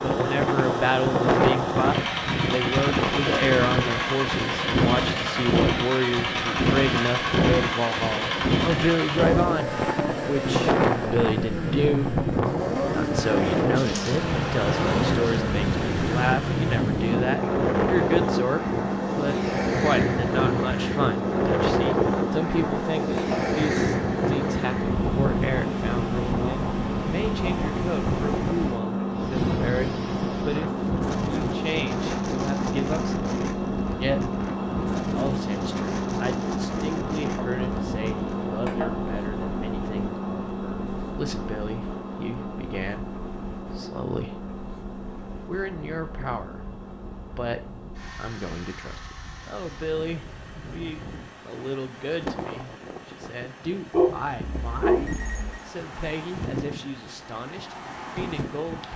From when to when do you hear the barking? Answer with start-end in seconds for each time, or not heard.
53.9-55.6.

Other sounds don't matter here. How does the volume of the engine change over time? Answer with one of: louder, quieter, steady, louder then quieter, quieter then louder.
quieter.